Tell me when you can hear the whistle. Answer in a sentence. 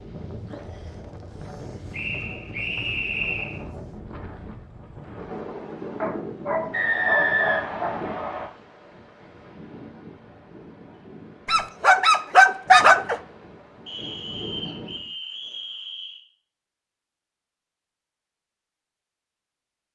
You can hear the whistle from 1.9 to 3.5 s, from 6.7 to 8.4 s and from 13.8 to 16.2 s.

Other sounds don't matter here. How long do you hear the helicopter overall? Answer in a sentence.
You can't hear the helicopter here.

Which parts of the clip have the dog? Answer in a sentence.
The dog can be heard from 6.0 to 8.3 s and from 11.4 to 13.2 s.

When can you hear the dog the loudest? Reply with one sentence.
The loudest moment of the dog is at 13 seconds.